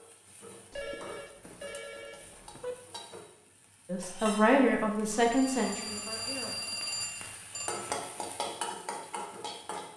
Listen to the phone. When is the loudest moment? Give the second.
7 s.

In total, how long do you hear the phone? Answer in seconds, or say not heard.
5 s.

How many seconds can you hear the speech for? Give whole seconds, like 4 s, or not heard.
3 s.